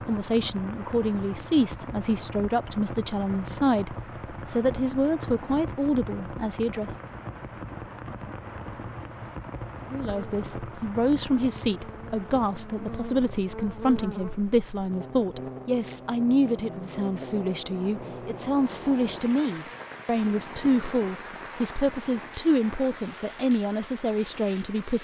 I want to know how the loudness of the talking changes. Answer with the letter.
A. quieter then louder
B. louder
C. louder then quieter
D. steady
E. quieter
D.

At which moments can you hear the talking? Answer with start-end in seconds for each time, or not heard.
0.1-7.0, 9.9-25.0.